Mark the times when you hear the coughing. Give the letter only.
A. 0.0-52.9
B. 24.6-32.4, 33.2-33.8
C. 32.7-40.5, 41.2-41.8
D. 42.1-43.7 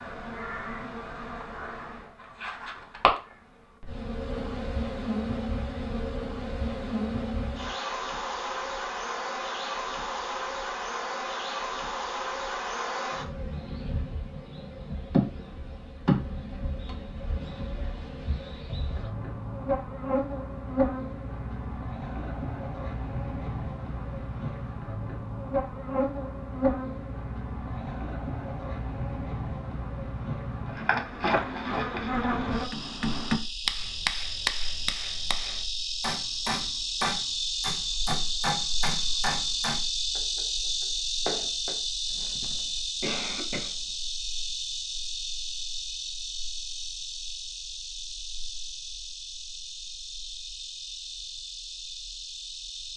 D.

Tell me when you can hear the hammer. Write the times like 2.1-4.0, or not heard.
32.7-40.5, 41.2-41.8.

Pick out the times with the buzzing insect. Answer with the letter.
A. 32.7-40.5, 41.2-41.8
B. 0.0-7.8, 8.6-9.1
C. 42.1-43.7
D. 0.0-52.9
D.